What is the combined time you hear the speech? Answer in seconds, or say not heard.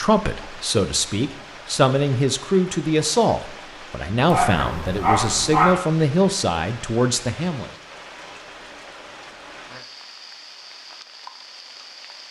8 s.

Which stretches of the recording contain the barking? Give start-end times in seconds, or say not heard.
4.2-5.8.